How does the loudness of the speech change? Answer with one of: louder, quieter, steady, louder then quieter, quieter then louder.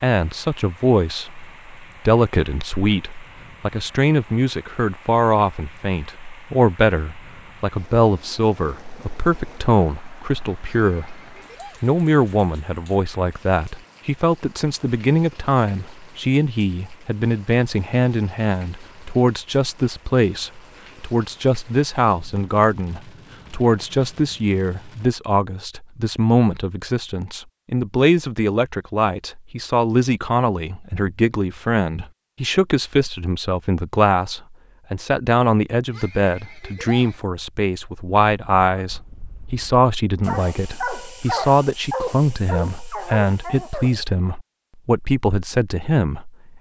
steady.